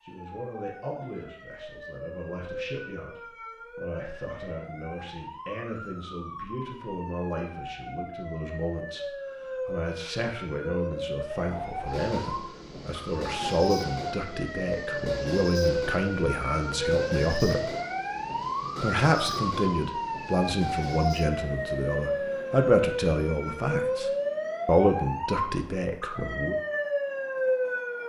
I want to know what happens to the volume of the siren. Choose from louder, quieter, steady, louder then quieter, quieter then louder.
louder.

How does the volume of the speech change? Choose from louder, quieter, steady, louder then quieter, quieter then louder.
louder.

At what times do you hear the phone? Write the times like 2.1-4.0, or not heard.
not heard.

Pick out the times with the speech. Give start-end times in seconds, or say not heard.
0.0-17.7, 18.8-26.6.